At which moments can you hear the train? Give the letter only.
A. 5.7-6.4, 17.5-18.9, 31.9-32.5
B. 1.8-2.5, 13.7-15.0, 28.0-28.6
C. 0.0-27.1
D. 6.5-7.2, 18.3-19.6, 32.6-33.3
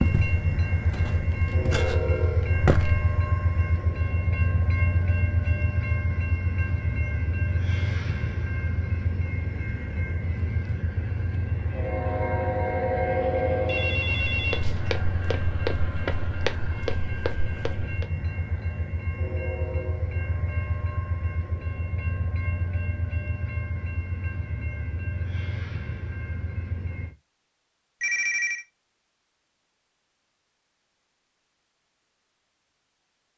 C.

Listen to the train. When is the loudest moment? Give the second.
13 s.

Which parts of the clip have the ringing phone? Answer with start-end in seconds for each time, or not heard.
1.8-2.5, 13.7-15.0, 28.0-28.6.